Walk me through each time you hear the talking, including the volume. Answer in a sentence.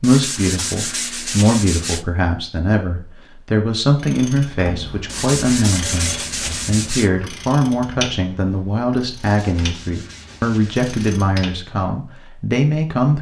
The talking can be heard from 0.0 to 13.1 s, at a steady volume.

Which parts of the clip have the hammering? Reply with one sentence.
You can't hear the hammering here.